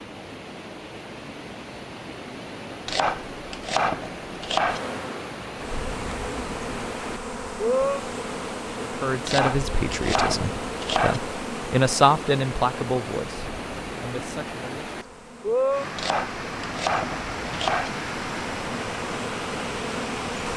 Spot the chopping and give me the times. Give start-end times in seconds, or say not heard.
2.9-4.8, 9.2-11.2, 15.9-17.9.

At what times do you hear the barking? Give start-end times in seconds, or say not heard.
not heard.